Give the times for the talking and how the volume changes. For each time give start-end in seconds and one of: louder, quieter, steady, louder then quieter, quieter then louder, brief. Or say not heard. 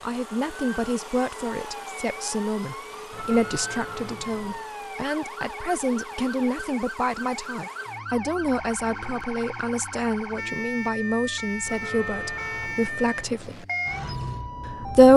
0.0-13.7 steady
14.7-15.1 brief.